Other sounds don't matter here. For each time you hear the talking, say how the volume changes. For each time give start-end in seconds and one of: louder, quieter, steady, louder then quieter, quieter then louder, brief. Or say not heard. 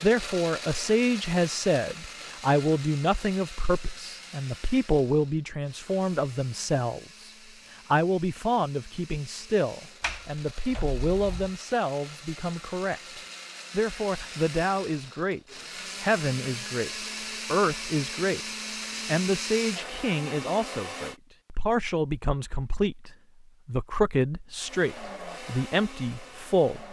0.0-26.8 steady.